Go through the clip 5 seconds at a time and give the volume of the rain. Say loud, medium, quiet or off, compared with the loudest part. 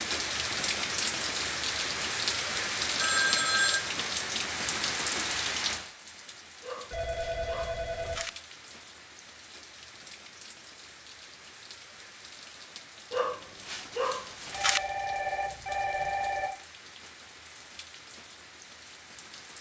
loud, medium, quiet, quiet.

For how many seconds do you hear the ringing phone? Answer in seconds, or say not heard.
4 s.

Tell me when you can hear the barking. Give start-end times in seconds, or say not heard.
6.6-8.3, 13.1-14.8.